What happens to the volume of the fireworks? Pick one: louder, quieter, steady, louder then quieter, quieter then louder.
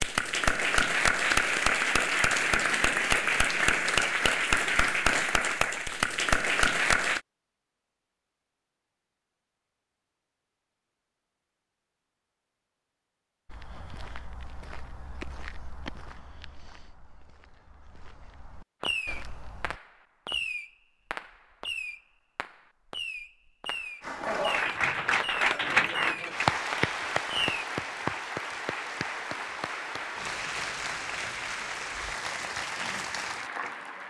steady.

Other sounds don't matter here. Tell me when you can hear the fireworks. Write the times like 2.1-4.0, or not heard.
18.8-27.6.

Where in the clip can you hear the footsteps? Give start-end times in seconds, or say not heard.
13.4-19.8.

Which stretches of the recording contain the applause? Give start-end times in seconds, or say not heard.
0.0-7.2, 24.0-34.0.